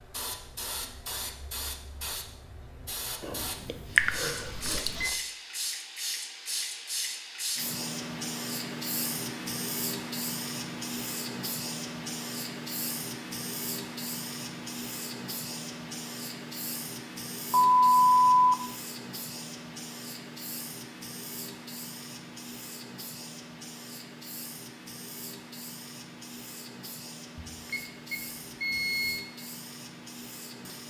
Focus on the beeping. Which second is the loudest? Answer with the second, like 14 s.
18 s.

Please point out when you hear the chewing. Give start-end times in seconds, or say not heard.
3.2-5.2.